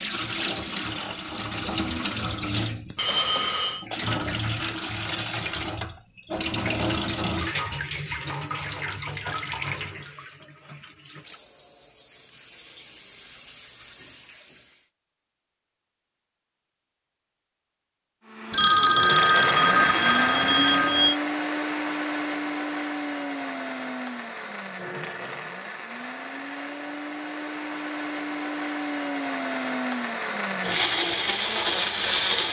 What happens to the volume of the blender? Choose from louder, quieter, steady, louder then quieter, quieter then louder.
quieter then louder.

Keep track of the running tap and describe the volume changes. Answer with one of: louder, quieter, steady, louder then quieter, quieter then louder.
quieter.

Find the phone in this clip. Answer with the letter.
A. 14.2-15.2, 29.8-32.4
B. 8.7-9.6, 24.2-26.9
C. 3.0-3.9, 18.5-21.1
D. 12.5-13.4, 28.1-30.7
C.